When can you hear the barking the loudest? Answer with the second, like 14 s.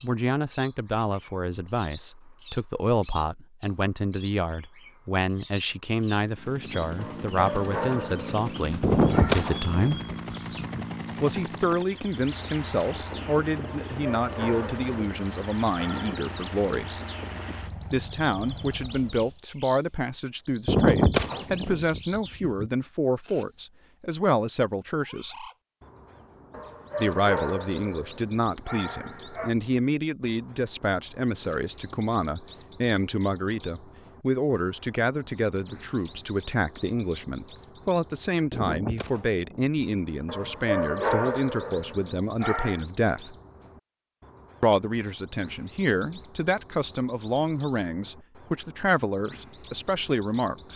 41 s.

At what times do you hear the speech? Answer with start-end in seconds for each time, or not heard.
0.0-10.0, 11.2-16.9, 17.9-25.4, 26.9-43.4, 44.6-50.7.